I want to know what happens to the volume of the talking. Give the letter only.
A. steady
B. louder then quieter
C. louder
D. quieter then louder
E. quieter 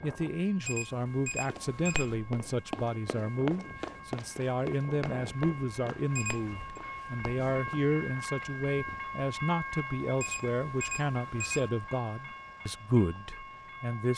A.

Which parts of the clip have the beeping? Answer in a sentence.
You can hear the beeping from 0.6 to 2.1 s, from 6.1 to 6.5 s and from 10.2 to 11.7 s.